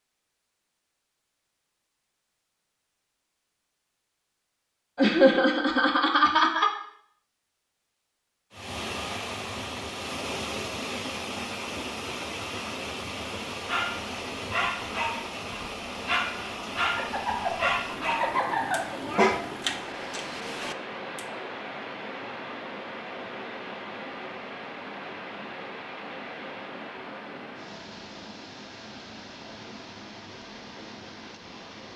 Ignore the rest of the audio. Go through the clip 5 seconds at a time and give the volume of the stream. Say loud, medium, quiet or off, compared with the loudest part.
off, loud, loud, loud, loud, medium, medium.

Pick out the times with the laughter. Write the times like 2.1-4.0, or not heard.
5.0-6.7, 16.9-19.4.